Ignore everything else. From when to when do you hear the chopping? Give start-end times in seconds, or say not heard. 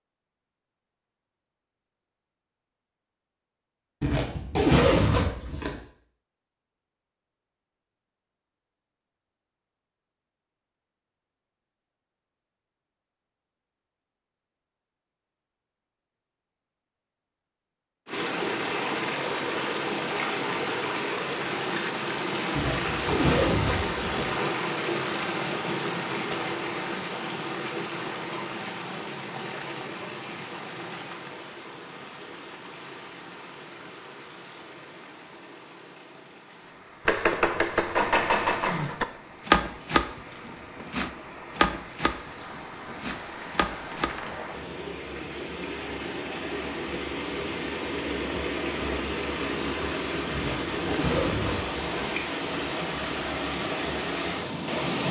37.0-44.6.